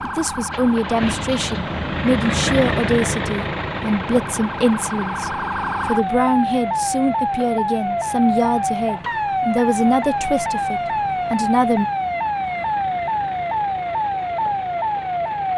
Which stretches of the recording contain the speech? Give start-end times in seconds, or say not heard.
0.0-11.8.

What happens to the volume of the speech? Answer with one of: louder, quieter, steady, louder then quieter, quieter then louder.
steady.